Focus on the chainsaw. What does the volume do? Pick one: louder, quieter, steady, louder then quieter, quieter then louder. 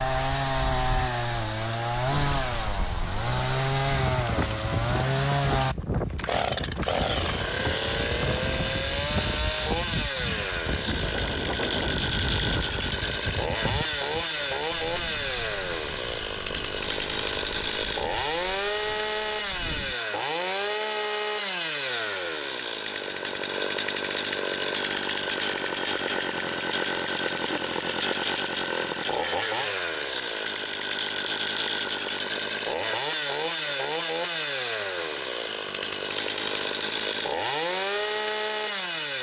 steady.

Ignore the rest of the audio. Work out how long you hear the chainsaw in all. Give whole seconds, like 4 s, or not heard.
39 s.